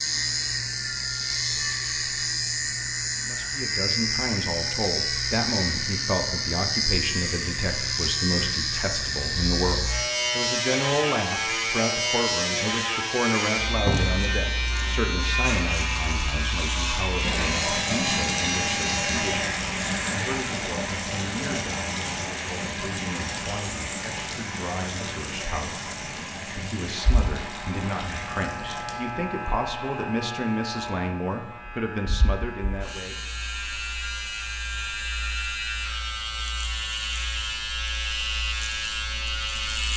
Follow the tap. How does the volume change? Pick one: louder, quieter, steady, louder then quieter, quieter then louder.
quieter.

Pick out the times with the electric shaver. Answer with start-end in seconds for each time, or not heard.
0.0-39.9.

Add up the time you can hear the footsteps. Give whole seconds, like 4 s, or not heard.
not heard.